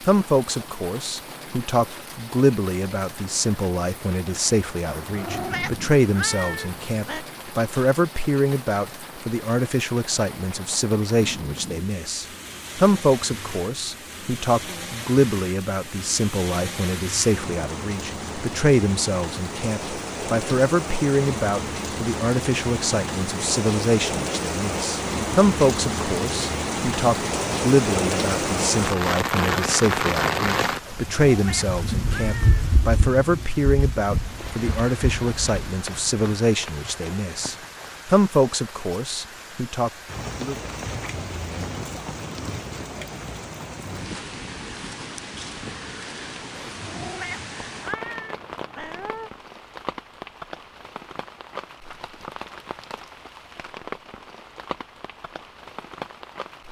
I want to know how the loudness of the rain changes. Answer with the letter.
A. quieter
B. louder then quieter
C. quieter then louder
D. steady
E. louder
B.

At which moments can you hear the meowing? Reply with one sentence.
The meowing can be heard from 4.8 to 7.2 s, from 30.8 to 32.8 s and from 46.5 to 49.3 s.